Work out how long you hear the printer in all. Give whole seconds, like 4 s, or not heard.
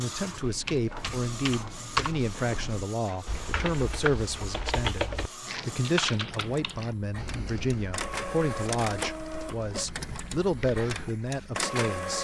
12 s.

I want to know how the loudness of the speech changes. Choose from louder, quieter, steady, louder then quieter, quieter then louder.
steady.